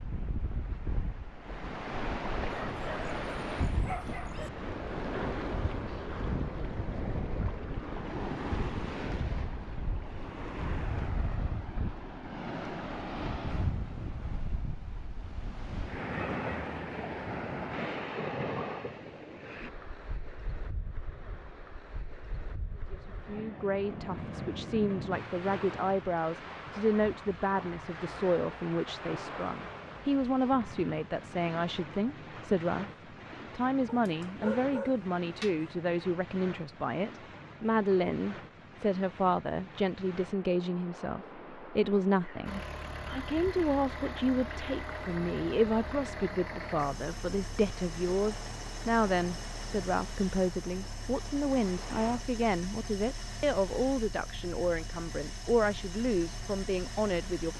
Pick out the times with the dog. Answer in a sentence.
You can hear the dog from 2.5 to 4.5 s and from 34.0 to 35.5 s.